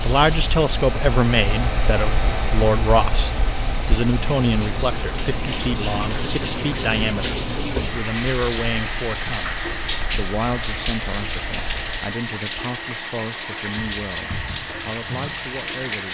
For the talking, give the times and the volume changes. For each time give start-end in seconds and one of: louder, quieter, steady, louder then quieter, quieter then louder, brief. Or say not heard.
0.0-16.1 quieter.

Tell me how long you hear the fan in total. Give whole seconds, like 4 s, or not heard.
12 s.